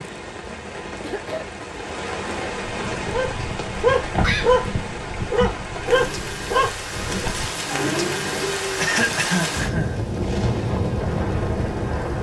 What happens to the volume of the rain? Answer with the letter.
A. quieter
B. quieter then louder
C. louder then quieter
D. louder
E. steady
D.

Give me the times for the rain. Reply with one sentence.
The rain can be heard from 0.0 to 12.1 s.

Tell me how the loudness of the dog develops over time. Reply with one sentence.
The loudness of the dog goes down.